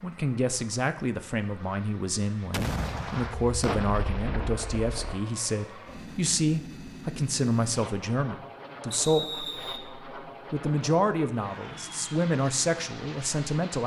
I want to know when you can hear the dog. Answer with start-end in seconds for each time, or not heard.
not heard.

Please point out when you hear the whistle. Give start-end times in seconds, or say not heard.
8.9-9.8.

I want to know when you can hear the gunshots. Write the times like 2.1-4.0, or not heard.
2.5-5.2.